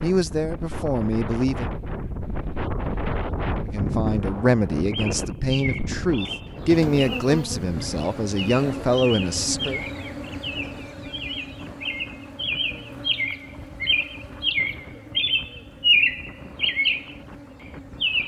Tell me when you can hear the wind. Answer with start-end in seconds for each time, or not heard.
0.0-18.2.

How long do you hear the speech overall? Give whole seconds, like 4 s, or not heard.
8 s.